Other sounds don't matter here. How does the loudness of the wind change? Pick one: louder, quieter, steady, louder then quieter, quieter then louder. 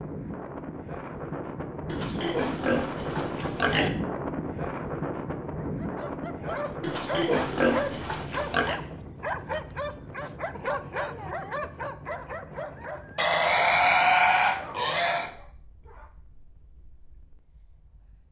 quieter.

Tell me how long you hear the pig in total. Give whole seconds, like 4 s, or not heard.
6 s.